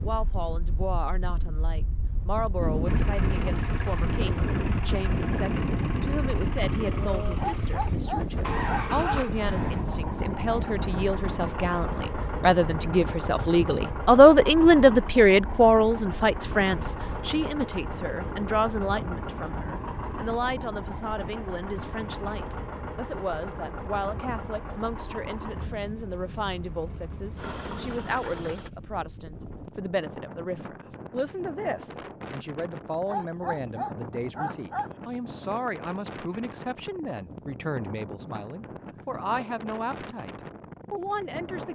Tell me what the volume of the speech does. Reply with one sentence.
The loudness of the speech goes up, then down.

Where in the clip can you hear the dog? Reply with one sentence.
You can hear the dog from 7.3 to 9.2 s and from 33.0 to 34.9 s.